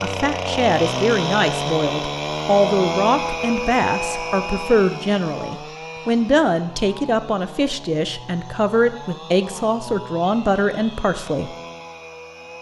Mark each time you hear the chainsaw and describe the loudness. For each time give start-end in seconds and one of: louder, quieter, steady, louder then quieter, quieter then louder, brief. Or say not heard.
0.0-12.5 quieter.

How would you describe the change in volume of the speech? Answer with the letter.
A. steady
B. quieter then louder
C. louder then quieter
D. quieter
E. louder
A.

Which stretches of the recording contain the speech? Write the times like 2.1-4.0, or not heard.
0.0-11.6.